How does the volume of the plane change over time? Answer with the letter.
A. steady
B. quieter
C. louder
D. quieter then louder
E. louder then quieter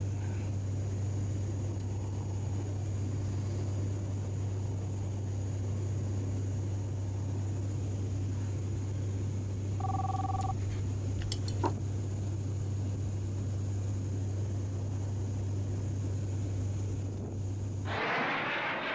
A.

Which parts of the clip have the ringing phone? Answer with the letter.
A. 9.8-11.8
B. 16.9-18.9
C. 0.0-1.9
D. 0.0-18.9
A.